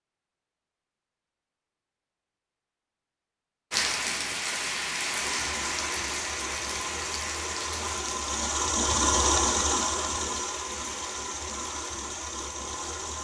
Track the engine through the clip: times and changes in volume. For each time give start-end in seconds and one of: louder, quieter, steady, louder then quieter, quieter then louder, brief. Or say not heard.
5.1-13.1 louder then quieter.